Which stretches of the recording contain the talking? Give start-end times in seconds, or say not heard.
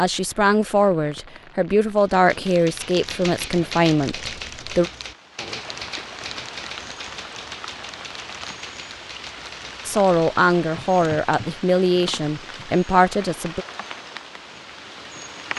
0.0-4.9, 9.8-13.7.